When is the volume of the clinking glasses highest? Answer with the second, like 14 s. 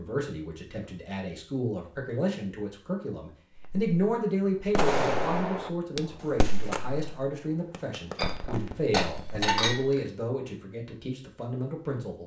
10 s.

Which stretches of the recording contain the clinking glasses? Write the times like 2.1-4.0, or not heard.
8.2-10.0.